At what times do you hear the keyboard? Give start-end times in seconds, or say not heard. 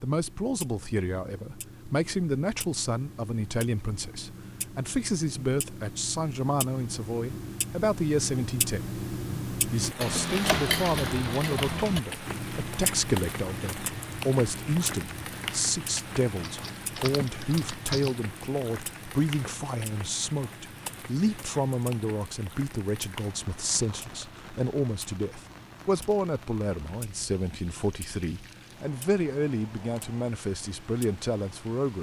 16.4-18.2.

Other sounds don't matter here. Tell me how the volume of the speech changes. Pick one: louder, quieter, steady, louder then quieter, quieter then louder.
steady.